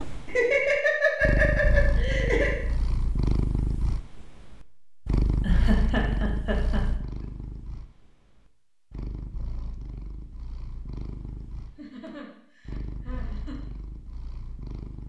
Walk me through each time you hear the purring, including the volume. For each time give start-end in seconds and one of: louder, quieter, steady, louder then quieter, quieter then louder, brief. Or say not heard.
0.0-15.0 quieter.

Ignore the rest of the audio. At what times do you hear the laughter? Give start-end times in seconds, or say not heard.
0.2-2.6, 5.4-6.8, 11.8-13.6.